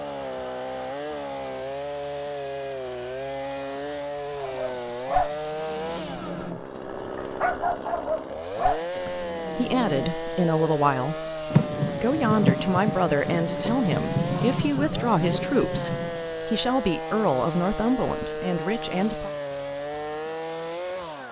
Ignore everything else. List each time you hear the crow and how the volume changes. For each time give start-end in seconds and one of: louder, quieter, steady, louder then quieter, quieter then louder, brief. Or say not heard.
not heard.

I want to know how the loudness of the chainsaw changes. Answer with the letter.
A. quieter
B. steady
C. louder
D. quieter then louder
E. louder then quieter
B.